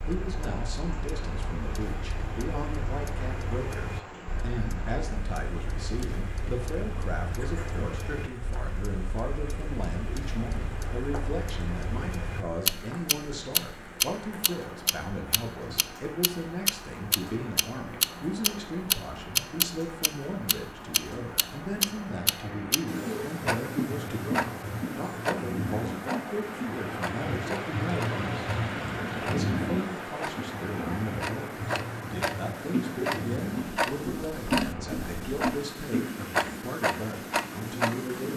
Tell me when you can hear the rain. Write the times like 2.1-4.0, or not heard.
0.0-38.3.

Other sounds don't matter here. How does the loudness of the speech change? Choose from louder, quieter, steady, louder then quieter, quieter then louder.
steady.